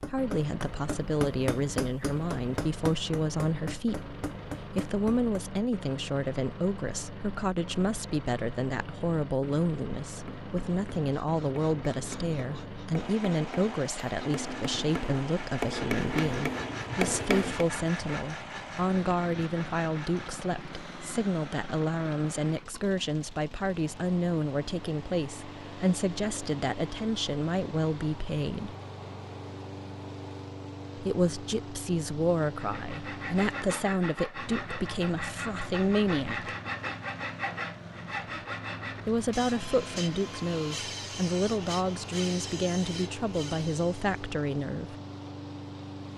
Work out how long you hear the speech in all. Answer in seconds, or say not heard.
40 s.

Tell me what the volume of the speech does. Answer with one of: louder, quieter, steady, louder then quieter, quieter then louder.
steady.